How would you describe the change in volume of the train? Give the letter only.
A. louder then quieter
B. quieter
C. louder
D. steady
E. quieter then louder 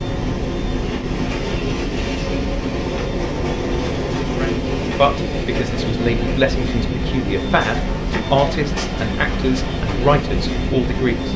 D.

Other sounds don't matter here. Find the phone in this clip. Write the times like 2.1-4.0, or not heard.
not heard.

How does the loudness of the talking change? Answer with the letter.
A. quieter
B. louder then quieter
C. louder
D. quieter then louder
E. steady
E.